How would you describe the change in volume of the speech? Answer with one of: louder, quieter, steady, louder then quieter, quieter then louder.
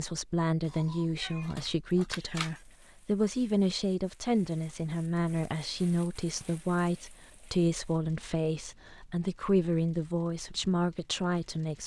steady.